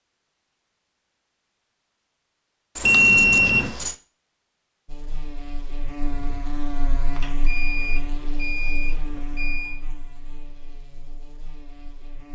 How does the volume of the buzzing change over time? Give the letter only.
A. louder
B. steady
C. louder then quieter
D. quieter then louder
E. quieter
E.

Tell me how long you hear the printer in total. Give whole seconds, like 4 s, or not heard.
not heard.